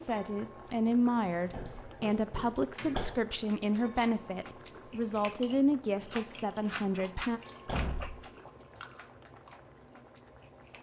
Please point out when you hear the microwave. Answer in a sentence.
The microwave can't be heard in this clip.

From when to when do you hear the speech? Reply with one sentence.
The speech can be heard from 0.1 to 7.4 s.